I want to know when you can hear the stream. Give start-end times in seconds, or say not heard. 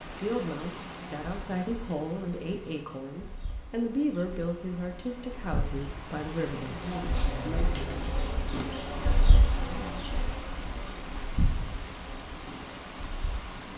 0.0-13.7.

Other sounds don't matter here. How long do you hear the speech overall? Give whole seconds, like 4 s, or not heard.
8 s.